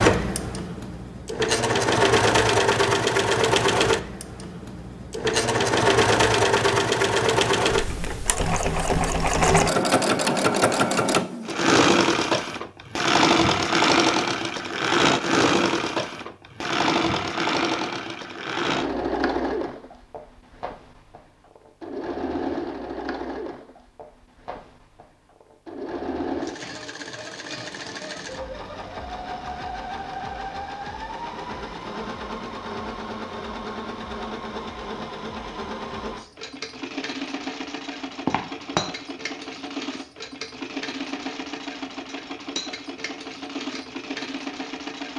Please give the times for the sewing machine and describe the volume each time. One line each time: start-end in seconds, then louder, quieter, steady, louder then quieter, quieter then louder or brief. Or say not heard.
0.0-45.1 quieter.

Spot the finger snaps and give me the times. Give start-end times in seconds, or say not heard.
38.2-38.9.